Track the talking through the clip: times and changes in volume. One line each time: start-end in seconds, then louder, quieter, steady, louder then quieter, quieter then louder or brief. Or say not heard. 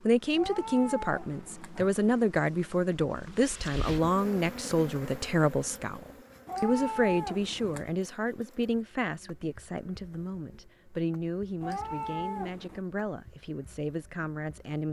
0.1-14.8 quieter.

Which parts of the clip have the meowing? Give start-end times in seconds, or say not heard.
0.3-1.9, 6.5-7.8, 11.6-12.8.